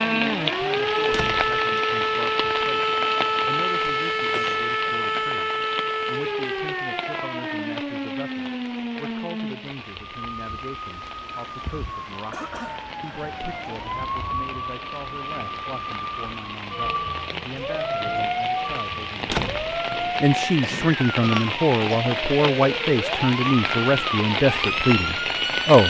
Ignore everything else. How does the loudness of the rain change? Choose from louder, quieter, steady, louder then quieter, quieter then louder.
quieter then louder.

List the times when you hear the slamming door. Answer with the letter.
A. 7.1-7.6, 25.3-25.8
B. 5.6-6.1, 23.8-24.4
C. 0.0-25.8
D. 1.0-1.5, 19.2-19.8
D.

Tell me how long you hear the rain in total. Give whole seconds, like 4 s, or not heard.
26 s.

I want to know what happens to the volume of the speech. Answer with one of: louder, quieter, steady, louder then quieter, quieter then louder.
louder.